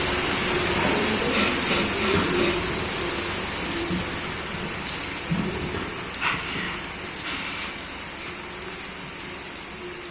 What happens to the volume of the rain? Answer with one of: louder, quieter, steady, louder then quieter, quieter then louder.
quieter.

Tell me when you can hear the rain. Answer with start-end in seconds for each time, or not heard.
0.0-10.0.